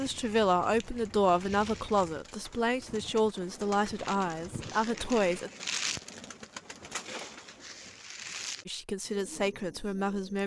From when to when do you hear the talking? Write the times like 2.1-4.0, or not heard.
0.0-5.5, 8.7-10.4.